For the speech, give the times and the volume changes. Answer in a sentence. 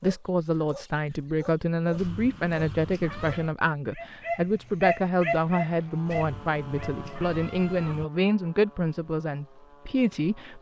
You can hear the speech from 0.0 to 10.5 s, at a steady volume.